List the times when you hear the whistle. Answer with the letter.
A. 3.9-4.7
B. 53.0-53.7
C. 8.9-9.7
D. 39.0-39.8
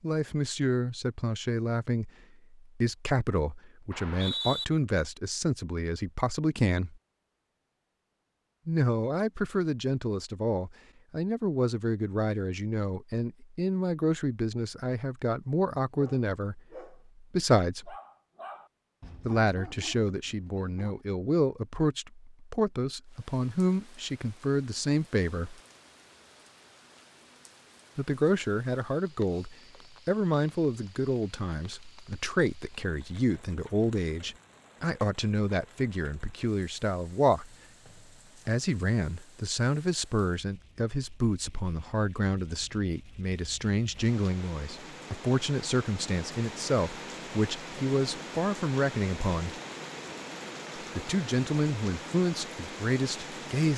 A.